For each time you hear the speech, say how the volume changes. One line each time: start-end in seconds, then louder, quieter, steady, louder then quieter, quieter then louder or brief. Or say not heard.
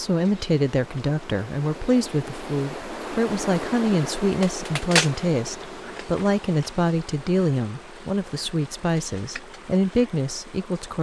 0.0-10.9 steady.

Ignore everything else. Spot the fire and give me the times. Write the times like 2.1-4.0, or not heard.
not heard.